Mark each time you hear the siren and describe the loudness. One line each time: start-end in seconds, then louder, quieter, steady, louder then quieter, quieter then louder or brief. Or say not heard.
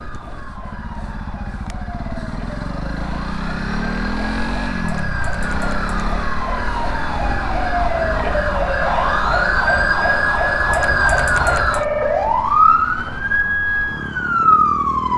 0.0-15.1 louder.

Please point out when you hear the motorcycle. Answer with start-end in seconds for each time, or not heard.
0.0-15.1.